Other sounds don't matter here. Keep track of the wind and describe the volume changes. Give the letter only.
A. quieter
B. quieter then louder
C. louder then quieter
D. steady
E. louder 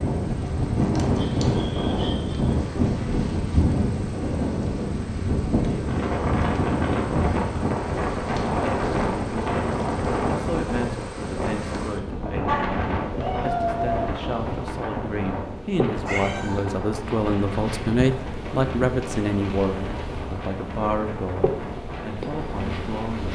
A.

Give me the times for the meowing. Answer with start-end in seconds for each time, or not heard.
1.1-2.5, 12.4-14.1, 16.0-16.6.